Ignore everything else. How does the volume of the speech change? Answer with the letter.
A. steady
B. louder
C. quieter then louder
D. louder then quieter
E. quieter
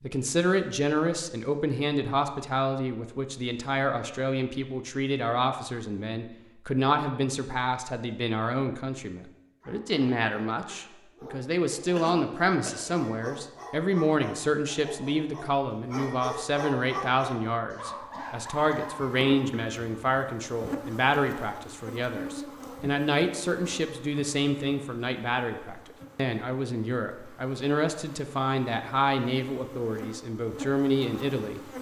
A.